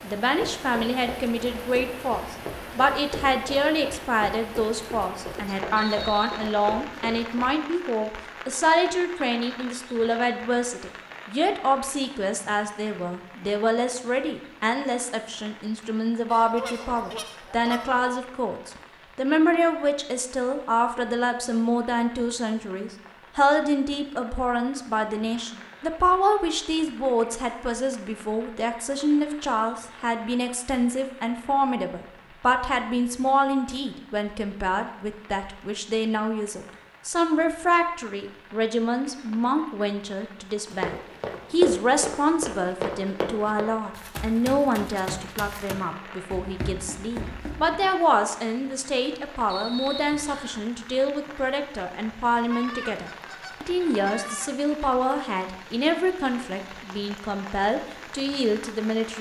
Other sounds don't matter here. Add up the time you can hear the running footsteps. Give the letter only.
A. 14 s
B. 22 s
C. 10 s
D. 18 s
A.